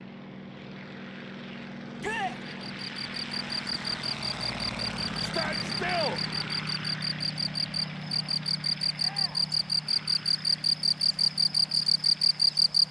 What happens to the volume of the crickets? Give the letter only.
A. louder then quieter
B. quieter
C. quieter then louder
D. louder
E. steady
D.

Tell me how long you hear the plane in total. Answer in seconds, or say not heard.
13 s.